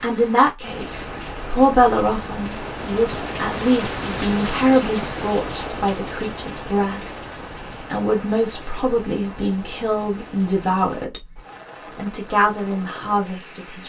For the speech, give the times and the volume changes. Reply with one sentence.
The speech can be heard from 0.0 to 7.2 s, getting quieter; and from 7.9 to 13.8 s, at a steady volume.